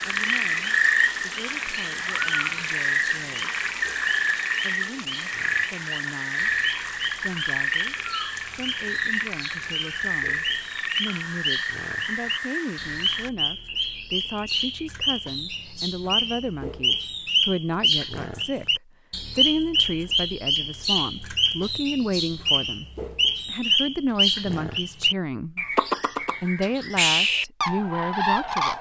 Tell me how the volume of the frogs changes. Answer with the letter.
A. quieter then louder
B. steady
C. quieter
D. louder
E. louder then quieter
C.